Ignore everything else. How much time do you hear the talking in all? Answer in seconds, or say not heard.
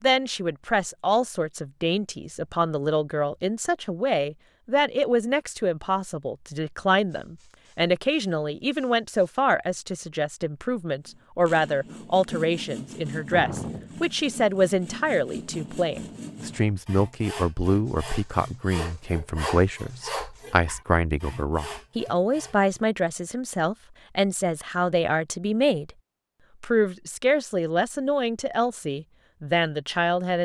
30 s.